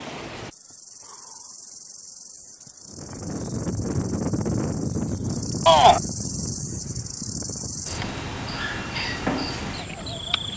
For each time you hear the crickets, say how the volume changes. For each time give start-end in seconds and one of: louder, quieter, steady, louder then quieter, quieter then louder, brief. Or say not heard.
0.0-10.5 louder.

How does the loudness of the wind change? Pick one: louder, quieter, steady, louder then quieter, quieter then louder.
quieter.